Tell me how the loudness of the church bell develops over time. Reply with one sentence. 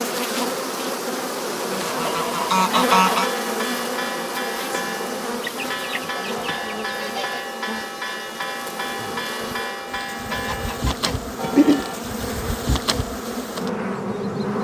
The volume of the church bell stays about the same.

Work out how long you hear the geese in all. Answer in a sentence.
The geese can be heard for 5 seconds in total.